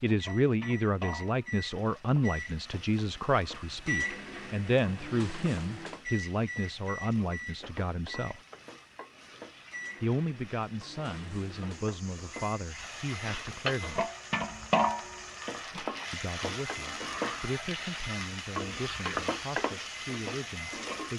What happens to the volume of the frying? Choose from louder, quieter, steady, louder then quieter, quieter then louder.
louder.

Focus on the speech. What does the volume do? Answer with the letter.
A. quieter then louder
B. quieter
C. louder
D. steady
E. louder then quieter
B.